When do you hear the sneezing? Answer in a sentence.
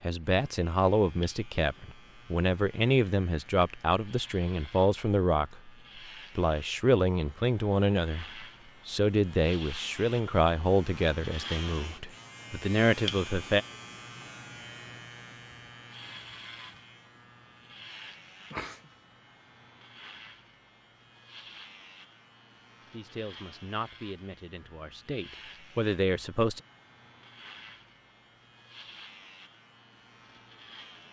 You can hear the sneezing from 18.5 to 18.9 s.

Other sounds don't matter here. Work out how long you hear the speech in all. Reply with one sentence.
You can hear the speech for 17 seconds altogether.